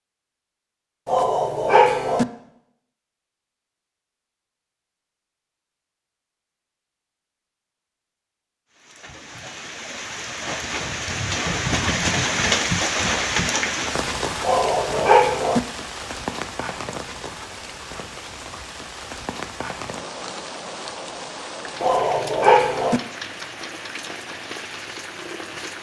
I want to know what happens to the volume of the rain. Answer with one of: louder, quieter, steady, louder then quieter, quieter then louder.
quieter.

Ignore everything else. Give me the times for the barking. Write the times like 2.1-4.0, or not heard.
1.1-2.2, 14.4-15.6, 21.8-23.0.